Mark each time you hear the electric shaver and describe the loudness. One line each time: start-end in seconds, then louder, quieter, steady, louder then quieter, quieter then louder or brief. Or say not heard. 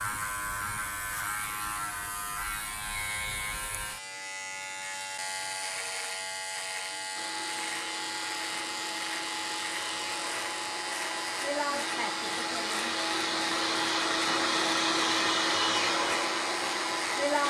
0.0-17.4 steady.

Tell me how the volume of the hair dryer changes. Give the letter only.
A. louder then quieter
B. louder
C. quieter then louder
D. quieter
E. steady
B.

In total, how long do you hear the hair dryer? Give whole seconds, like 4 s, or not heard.
10 s.